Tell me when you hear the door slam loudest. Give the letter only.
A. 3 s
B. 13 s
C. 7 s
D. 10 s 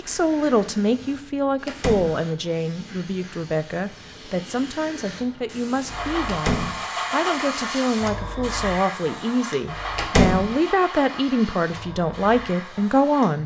D.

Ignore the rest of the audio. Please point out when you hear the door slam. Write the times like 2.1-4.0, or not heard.
1.6-2.2, 6.2-6.8, 9.9-10.5.